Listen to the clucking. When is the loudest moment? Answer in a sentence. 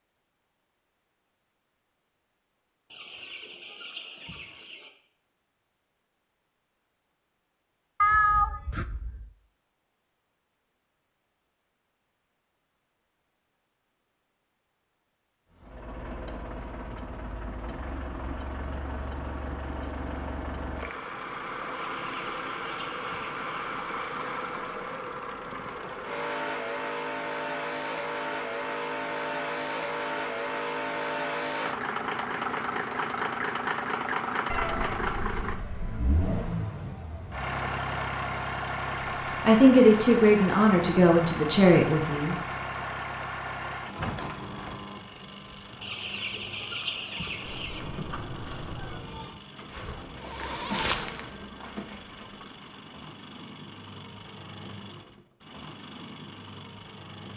The volume of the clucking peaks at 47 seconds.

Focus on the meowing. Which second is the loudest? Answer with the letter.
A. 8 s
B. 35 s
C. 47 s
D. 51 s
A.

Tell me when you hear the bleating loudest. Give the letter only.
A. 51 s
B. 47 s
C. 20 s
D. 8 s
A.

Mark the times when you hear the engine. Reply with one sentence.
You can hear the engine from 15.5 to 57.3 s.